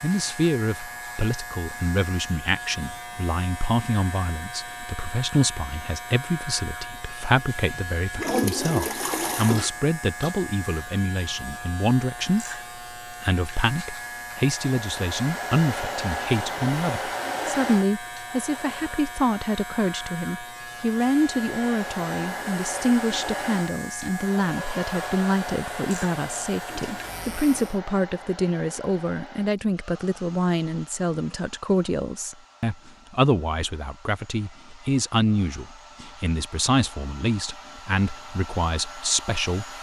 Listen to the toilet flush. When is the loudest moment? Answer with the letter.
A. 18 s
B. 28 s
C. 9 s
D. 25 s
C.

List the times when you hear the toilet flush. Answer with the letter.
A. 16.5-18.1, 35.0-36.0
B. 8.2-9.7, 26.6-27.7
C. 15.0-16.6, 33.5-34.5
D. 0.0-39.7
B.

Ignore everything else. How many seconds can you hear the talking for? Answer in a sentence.
You can hear the talking for 40 seconds altogether.